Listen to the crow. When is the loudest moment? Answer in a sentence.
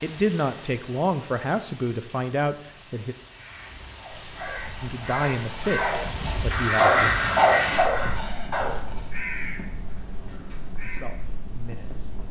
The loudest moment of the crow is at 7 seconds.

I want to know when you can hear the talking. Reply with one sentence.
The talking can be heard from 0.0 to 3.1 s, from 4.8 to 7.1 s and from 10.8 to 12.1 s.